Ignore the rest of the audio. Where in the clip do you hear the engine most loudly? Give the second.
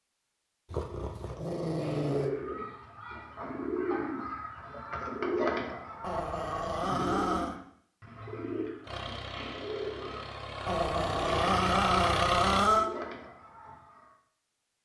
12 s.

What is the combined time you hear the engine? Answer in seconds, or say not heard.
4 s.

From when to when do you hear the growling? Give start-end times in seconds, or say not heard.
0.7-2.3, 6.0-7.5, 10.7-12.9.